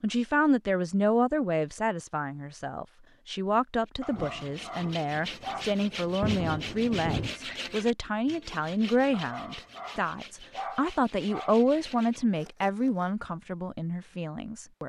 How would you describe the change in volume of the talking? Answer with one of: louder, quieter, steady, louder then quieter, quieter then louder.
steady.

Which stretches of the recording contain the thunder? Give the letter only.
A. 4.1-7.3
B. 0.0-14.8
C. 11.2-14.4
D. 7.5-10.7
A.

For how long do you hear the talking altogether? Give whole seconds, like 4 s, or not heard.
15 s.